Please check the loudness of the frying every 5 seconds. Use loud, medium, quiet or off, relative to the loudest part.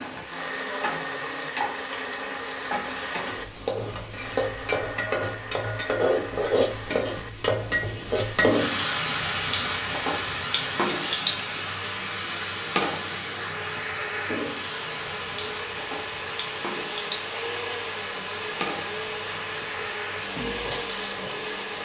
medium, loud, loud, medium, medium.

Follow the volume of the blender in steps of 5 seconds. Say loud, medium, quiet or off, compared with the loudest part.
loud, medium, medium, loud, loud.